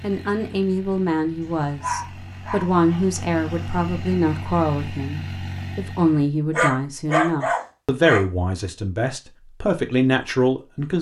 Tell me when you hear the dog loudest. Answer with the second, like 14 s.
7 s.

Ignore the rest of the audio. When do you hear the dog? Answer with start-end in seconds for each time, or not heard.
1.4-3.1, 6.5-8.2.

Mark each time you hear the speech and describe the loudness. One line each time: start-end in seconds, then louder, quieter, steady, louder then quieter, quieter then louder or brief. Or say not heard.
0.0-10.9 steady.